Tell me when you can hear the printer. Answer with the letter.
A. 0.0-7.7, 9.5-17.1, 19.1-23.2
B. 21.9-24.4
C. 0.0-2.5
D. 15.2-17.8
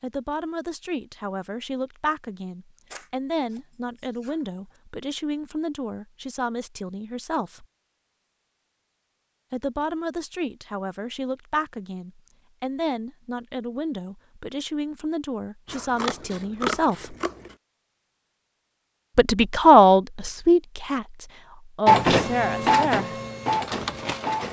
B.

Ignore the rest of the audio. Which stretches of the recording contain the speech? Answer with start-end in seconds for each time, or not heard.
0.0-7.7, 9.5-17.1, 19.1-23.2.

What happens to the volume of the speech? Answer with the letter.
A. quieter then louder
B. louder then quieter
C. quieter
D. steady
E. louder
E.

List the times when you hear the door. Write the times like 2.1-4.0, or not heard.
not heard.